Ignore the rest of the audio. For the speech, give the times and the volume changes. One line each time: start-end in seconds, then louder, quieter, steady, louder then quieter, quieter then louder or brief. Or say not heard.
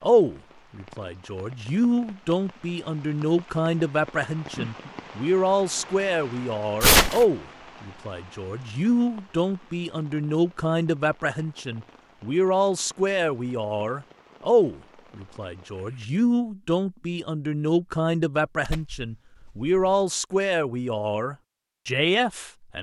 0.0-22.7 steady.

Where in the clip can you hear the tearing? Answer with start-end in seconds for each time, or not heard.
6.8-7.2, 18.6-19.9.